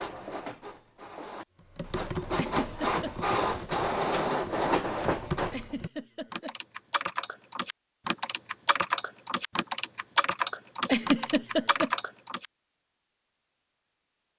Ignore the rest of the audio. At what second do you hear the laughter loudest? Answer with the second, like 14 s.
11 s.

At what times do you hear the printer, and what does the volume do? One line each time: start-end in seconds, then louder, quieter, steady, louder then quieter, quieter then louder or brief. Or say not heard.
0.0-5.8 louder.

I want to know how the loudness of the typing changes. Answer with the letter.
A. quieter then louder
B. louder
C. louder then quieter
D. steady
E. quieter
B.